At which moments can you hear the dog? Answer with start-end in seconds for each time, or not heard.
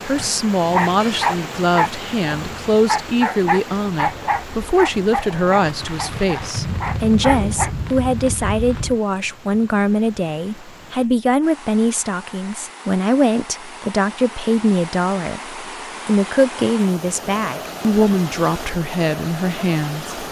0.0-7.7.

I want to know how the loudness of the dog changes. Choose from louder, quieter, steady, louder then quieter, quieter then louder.
quieter.